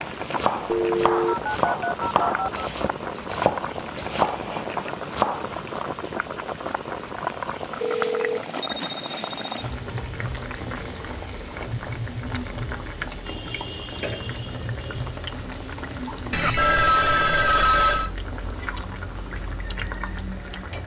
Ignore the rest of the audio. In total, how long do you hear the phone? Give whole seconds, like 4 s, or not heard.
6 s.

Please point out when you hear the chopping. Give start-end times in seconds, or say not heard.
0.2-5.8.